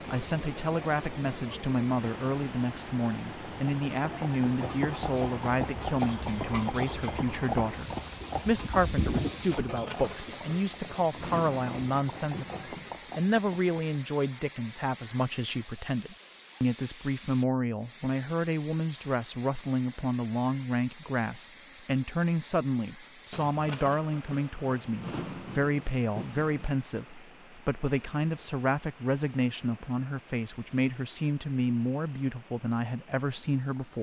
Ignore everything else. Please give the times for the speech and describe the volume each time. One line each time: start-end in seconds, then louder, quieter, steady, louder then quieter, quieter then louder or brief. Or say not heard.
0.1-33.9 steady.